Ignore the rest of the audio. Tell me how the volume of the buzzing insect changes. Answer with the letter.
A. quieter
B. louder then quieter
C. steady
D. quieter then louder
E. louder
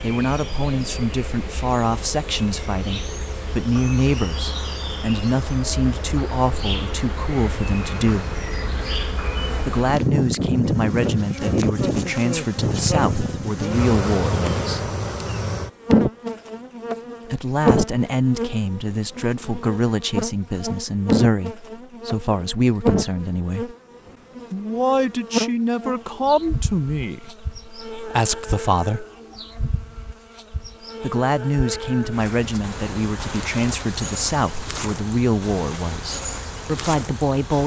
B.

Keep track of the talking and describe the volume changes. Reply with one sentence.
The loudness of the talking stays about the same.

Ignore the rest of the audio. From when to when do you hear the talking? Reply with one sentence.
The talking can be heard from 0.0 to 8.2 s, from 9.7 to 14.9 s, from 17.2 to 23.8 s, from 24.5 to 29.1 s and from 31.0 to 37.6 s.